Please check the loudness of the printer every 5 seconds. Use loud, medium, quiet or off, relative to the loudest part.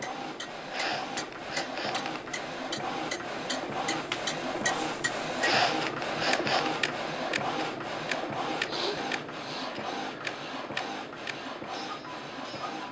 loud, loud, medium.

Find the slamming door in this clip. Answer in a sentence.
The slamming door can't be heard in this clip.